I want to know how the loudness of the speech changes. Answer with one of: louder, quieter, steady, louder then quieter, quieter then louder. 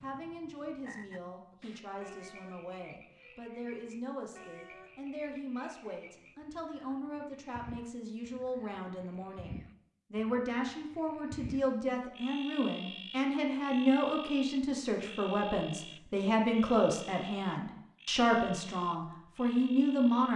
louder.